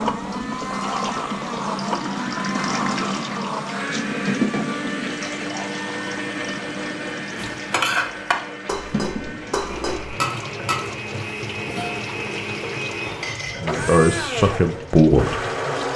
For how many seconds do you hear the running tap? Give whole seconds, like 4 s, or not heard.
16 s.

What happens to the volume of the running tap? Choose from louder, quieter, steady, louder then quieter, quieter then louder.
quieter.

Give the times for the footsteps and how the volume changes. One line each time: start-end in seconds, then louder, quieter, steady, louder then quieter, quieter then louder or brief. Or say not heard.
not heard.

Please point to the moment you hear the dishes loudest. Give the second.
8 s.